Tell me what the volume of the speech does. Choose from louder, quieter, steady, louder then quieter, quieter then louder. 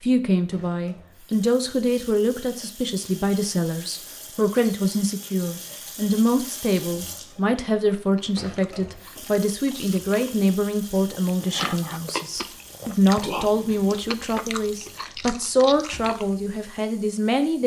steady.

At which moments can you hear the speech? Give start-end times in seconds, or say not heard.
0.0-17.6.